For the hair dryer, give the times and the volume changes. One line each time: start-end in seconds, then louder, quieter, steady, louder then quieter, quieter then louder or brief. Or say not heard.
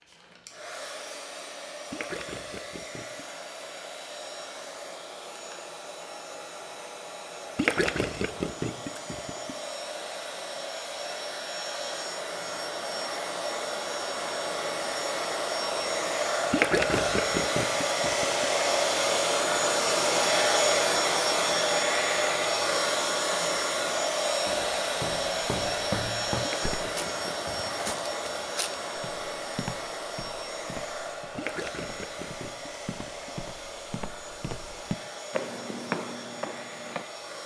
0.0-37.4 louder then quieter.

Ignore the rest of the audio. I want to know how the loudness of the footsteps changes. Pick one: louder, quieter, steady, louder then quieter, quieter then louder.
quieter then louder.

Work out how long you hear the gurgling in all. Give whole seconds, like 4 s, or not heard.
9 s.